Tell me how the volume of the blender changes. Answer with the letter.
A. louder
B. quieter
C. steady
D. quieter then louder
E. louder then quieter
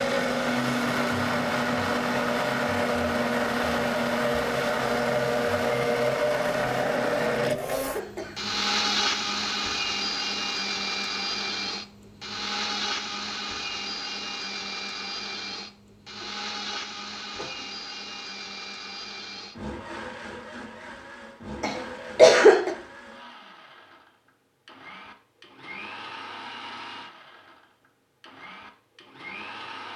B.